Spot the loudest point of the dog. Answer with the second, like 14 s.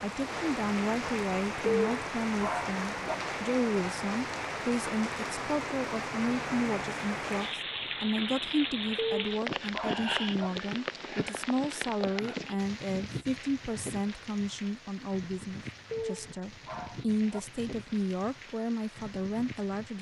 2 s.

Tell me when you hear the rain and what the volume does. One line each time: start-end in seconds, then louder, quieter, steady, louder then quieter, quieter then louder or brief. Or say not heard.
0.0-19.9 quieter.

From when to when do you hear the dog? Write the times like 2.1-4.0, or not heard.
1.6-3.1, 8.9-10.5, 15.9-17.4.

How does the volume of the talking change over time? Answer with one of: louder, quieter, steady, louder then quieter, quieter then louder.
steady.